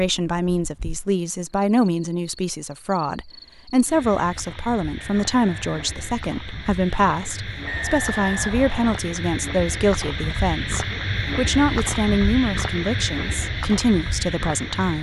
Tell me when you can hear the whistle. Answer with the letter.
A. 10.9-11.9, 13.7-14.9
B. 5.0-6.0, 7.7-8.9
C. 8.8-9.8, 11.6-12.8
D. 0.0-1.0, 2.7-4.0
B.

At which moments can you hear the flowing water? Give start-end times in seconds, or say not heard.
not heard.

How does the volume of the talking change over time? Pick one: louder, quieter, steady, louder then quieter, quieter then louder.
steady.